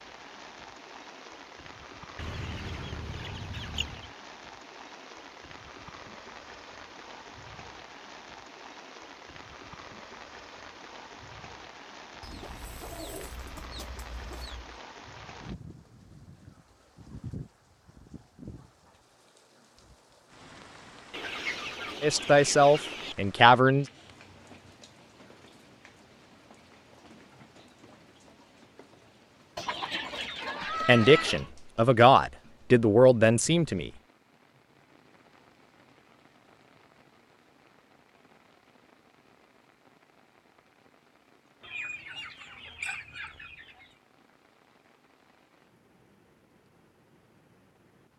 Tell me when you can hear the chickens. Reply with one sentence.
The chickens can be heard from 2.1 to 4.1 s, from 12.2 to 14.8 s, from 21.1 to 23.1 s, from 29.6 to 31.5 s and from 41.6 to 43.9 s.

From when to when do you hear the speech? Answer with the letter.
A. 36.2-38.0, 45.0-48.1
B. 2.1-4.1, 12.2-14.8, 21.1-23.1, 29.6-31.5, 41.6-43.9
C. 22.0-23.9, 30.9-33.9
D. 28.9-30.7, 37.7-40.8
C.